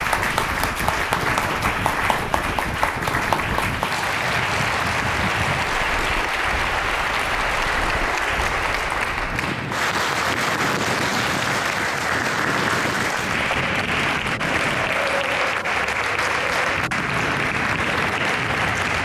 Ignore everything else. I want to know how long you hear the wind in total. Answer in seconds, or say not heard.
19 s.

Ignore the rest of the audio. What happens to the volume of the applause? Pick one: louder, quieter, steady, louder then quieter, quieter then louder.
steady.